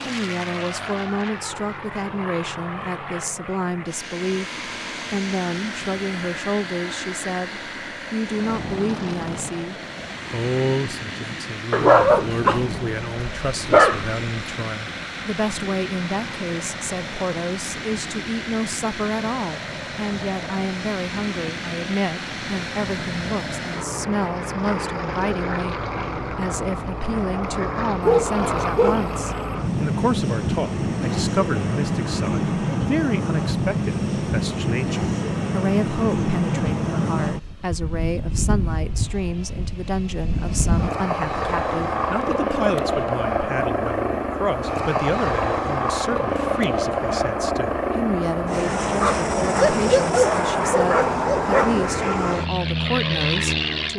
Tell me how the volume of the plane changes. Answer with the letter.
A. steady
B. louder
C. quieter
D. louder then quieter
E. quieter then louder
B.